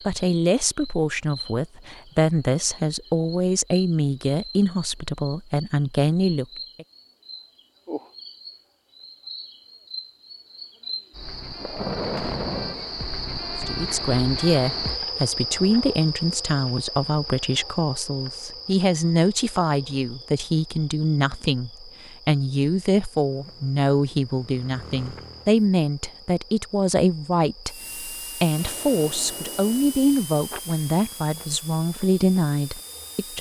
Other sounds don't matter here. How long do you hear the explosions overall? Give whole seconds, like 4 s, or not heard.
3 s.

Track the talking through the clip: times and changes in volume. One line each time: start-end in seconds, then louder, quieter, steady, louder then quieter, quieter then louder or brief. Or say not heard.
0.1-6.8 steady
13.7-33.3 steady.